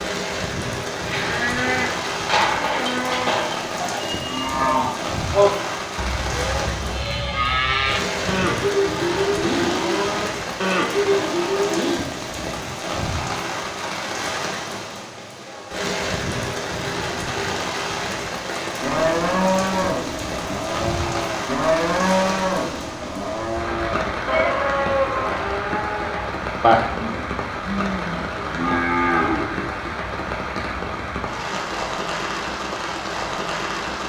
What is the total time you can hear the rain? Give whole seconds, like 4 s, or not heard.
34 s.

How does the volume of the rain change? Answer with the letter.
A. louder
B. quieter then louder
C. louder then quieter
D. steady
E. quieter
D.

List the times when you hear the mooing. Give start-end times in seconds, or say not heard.
1.1-12.1, 18.8-29.8.